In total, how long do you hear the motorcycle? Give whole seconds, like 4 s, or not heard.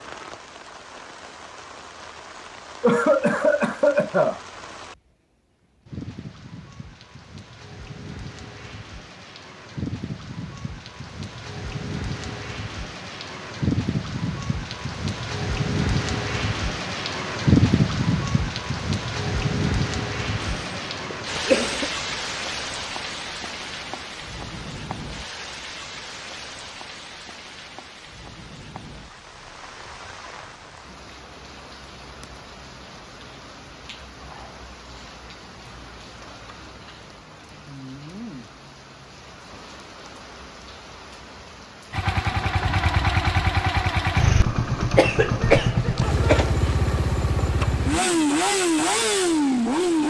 8 s.